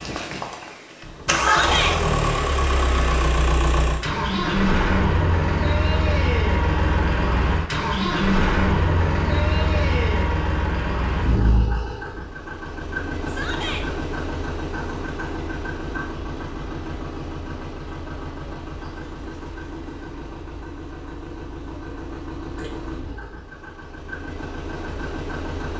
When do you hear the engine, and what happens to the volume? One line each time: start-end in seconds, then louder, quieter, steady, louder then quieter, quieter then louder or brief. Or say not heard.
0.0-25.7 quieter.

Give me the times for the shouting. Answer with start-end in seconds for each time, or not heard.
1.4-1.9, 13.2-13.8.